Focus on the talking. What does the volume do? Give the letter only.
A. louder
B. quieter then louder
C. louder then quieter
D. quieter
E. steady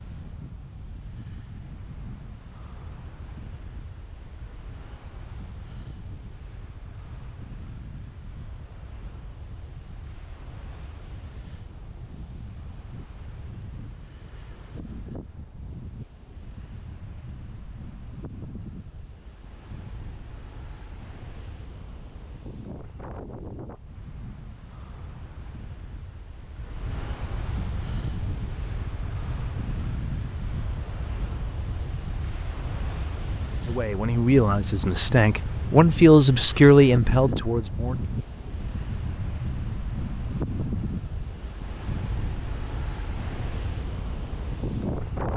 C.